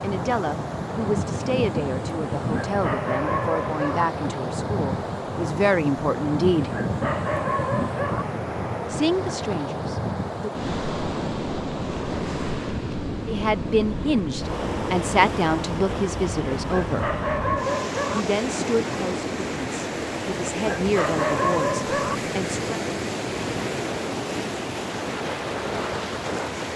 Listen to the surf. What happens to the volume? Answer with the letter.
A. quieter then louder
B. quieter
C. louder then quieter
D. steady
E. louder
D.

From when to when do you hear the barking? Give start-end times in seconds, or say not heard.
2.5-4.0, 6.7-8.2, 16.8-18.2, 20.6-22.1.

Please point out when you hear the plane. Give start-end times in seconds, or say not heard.
not heard.